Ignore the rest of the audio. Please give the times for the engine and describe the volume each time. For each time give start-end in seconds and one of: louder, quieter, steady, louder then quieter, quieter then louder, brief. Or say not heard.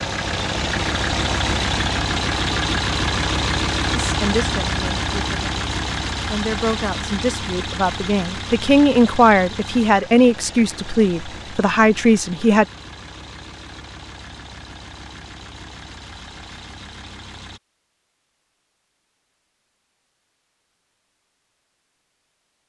0.0-17.6 quieter.